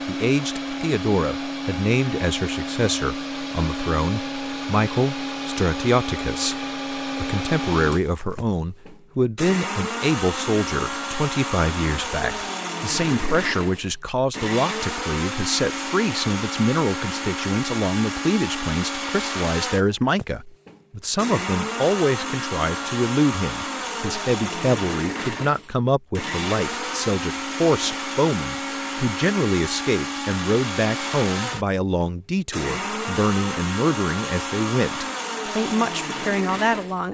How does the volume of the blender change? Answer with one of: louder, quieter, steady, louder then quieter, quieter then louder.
steady.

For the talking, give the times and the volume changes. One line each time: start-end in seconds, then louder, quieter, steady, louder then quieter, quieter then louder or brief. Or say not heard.
0.1-37.1 steady.